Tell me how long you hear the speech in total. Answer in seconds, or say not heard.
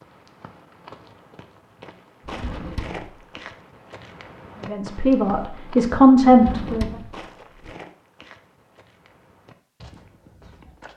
2 s.